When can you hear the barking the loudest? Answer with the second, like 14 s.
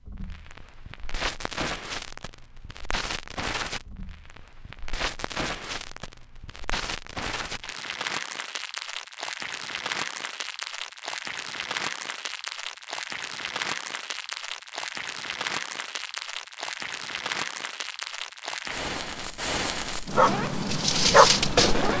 21 s.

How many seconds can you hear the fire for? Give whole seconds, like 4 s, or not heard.
22 s.